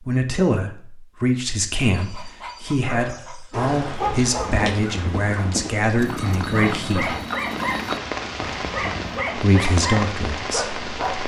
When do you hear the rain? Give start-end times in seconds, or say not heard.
3.5-11.2.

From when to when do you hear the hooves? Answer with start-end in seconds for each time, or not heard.
4.4-9.2.